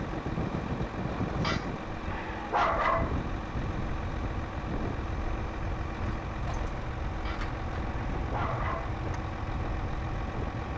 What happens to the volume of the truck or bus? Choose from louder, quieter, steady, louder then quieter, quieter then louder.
steady.